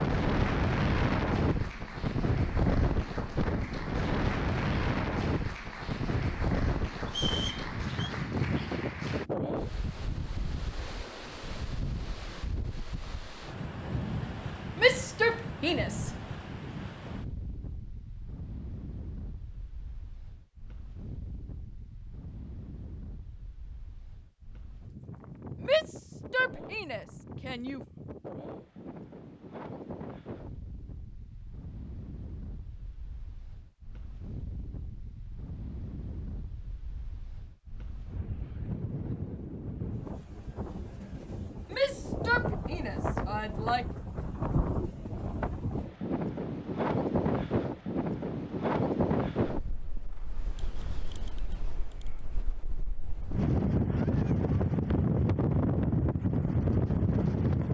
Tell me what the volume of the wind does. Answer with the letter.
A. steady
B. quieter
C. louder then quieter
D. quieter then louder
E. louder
D.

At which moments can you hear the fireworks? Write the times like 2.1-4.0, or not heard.
not heard.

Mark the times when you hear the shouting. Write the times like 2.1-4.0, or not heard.
14.8-16.1, 25.6-27.8, 41.7-43.9.